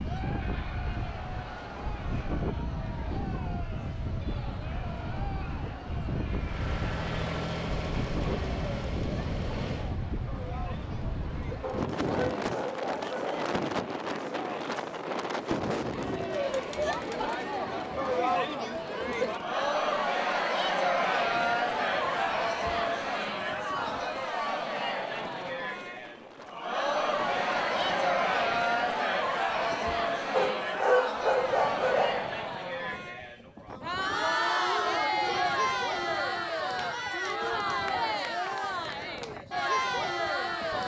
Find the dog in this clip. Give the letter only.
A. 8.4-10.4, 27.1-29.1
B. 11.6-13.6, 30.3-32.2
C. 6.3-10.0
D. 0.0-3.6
B.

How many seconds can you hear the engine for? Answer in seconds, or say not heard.
4 s.